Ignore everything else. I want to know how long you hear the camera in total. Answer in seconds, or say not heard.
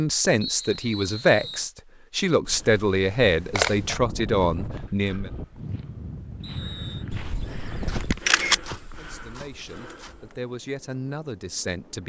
3 s.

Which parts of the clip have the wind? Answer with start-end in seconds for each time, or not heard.
3.5-12.0.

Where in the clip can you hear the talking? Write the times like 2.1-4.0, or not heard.
0.0-5.3, 8.9-12.0.